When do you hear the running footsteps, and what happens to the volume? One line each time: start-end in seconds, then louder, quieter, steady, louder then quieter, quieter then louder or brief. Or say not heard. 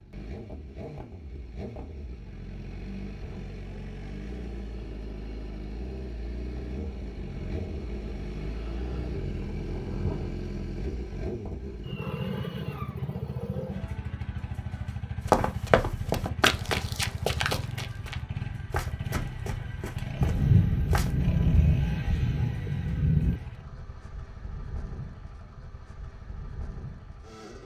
15.2-21.1 quieter.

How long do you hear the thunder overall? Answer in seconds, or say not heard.
7 s.